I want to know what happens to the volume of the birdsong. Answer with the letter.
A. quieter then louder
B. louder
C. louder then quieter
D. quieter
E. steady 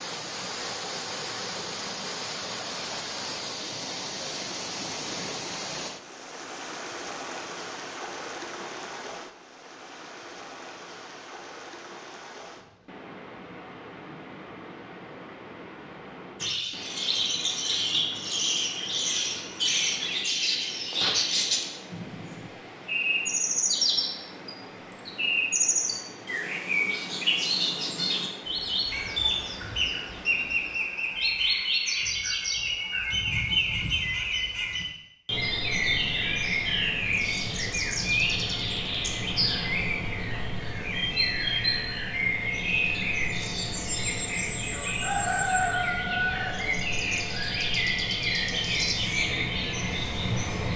E.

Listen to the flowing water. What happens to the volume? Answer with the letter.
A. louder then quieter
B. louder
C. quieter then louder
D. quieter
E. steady
D.